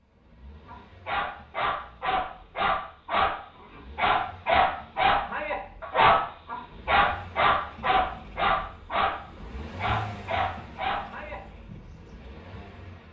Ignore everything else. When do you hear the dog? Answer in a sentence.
You can hear the dog from 0.7 to 12.1 s.